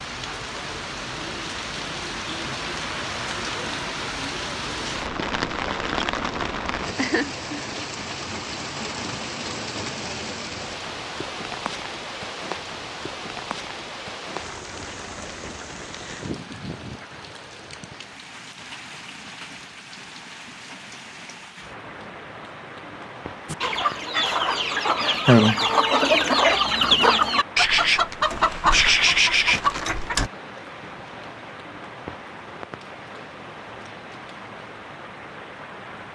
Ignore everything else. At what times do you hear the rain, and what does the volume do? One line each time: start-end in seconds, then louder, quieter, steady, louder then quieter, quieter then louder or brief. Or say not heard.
0.0-36.1 quieter.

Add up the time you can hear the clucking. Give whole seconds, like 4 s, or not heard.
7 s.